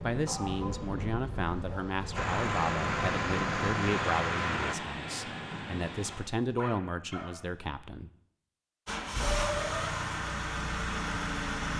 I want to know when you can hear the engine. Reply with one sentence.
You can hear the engine from 2.1 to 4.8 s and from 8.8 to 11.7 s.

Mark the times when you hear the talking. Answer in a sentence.
The talking can be heard from 0.0 to 8.1 s.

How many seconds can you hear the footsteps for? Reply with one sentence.
The footsteps can't be heard in this clip.